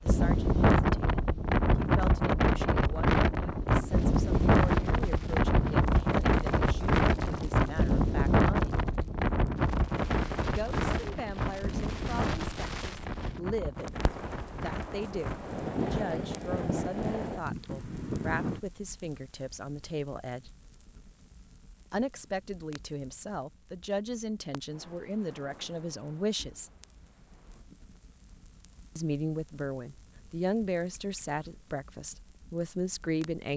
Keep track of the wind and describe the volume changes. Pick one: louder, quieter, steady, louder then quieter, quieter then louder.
quieter.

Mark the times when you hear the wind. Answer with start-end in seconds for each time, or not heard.
0.0-18.6.